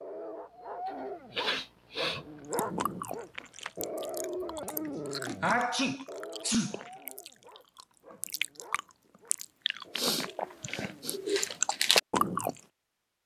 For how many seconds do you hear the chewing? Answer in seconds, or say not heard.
10 s.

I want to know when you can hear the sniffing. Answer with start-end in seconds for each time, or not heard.
1.4-2.2, 4.7-6.8, 9.9-11.2.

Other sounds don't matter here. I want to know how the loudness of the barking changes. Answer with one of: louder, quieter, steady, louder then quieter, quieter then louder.
quieter.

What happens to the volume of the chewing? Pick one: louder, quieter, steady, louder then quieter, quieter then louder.
louder.